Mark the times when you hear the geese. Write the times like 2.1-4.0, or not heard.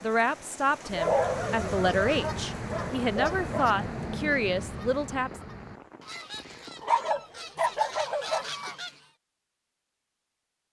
0.9-9.1.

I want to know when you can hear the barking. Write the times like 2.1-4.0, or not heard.
0.8-3.8, 6.8-8.5.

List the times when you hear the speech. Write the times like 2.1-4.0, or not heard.
0.0-5.4.